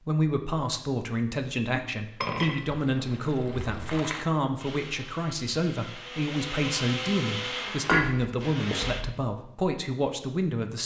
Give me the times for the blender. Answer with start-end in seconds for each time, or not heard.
4.5-9.1.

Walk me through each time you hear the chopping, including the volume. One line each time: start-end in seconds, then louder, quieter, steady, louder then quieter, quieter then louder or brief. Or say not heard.
not heard.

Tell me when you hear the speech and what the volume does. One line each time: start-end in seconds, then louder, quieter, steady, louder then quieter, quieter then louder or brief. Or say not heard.
0.1-10.8 steady.